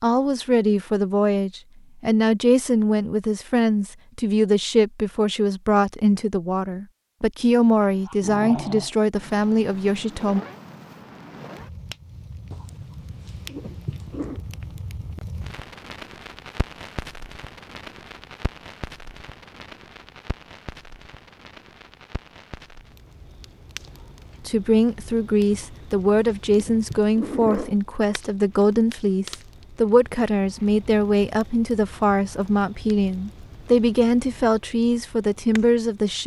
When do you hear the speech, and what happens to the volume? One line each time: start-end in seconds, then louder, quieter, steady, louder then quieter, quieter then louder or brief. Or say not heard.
0.0-10.4 steady
24.4-36.2 steady.